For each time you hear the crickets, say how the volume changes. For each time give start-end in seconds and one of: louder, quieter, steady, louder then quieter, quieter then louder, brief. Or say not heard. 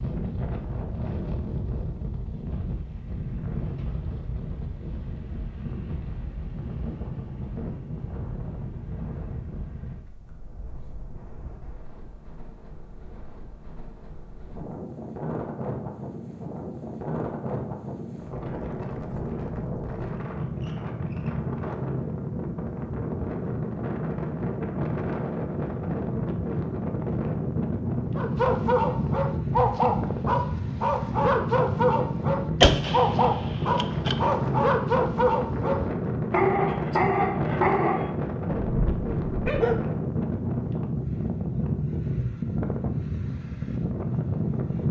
not heard.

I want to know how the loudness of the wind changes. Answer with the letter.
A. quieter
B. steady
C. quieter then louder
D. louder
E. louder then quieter
D.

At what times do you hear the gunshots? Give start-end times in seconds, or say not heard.
32.6-34.1.